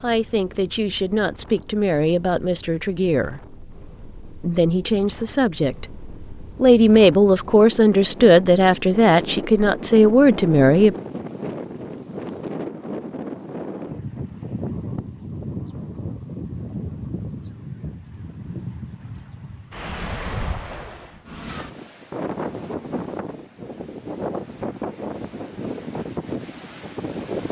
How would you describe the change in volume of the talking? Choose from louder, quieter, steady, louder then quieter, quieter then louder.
louder.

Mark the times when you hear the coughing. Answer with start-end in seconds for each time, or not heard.
not heard.